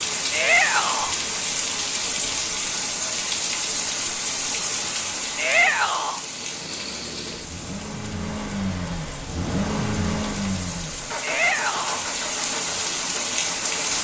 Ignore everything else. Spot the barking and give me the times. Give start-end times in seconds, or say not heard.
not heard.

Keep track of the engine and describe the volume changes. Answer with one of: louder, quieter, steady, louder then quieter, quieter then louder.
louder then quieter.